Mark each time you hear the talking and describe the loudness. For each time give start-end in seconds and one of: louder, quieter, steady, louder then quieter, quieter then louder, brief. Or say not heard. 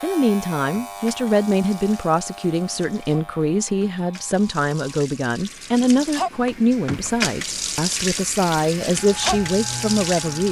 0.0-10.4 steady.